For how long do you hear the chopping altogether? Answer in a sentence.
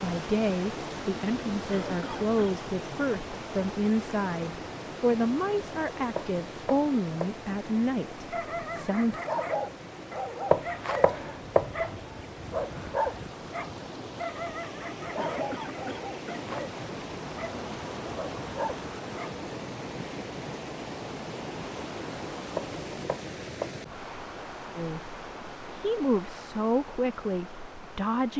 The chopping can be heard for 4 seconds in total.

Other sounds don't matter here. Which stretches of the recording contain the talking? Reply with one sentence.
The talking can be heard from 0.0 to 9.2 s and from 24.8 to 28.3 s.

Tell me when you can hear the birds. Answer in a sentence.
The birds can't be heard in this clip.